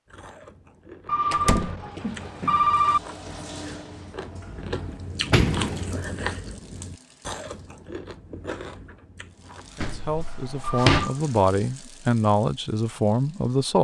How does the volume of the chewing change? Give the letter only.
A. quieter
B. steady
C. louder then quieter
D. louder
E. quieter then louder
C.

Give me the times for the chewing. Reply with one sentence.
The chewing can be heard from 0.1 to 9.8 s.